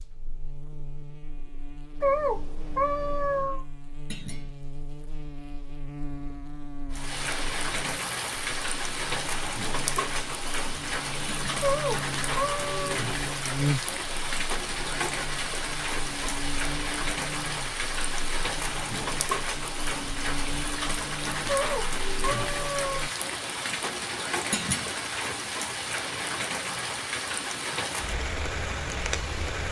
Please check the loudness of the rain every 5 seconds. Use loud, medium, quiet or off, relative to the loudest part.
off, loud, loud, loud, loud, loud.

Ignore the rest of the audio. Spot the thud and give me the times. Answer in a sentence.
The thud can be heard from 4.0 to 4.5 s, from 11.2 to 11.7 s and from 24.5 to 24.9 s.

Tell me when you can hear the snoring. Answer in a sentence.
You can't hear the snoring here.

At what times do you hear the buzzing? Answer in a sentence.
You can hear the buzzing from 0.0 to 23.1 s.